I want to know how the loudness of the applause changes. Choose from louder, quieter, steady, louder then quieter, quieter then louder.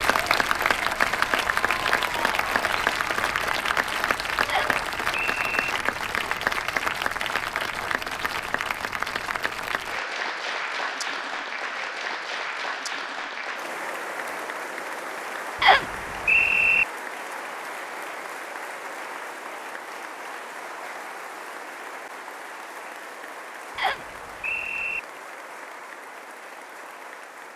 quieter.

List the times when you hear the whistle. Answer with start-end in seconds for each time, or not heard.
4.5-5.7, 15.6-16.9, 23.8-25.0.